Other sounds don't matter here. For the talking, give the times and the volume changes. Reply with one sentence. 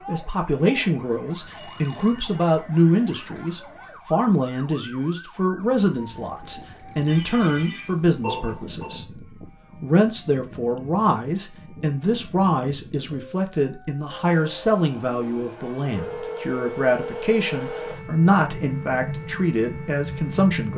You can hear the talking from 0.1 to 20.7 s, at a steady volume.